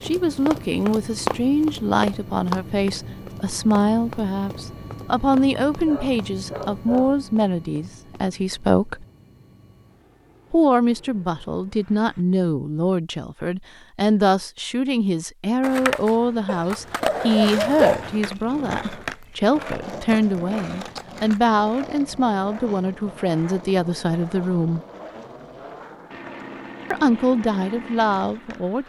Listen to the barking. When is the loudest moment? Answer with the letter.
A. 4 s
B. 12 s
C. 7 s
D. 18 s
D.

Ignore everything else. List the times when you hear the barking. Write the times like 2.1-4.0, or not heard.
5.8-7.2, 16.4-18.2.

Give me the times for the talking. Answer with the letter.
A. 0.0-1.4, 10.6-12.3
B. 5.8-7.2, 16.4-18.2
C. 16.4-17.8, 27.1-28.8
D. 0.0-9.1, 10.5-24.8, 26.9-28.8
D.